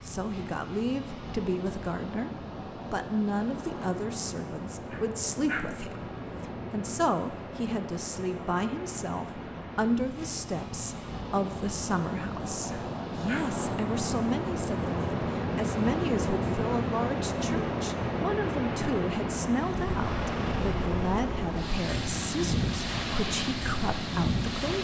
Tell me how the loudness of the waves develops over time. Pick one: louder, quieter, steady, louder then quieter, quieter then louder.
louder.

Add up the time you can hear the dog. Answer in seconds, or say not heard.
2 s.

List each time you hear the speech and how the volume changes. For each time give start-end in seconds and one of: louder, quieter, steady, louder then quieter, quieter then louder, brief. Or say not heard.
0.0-2.3 brief
2.9-24.7 steady.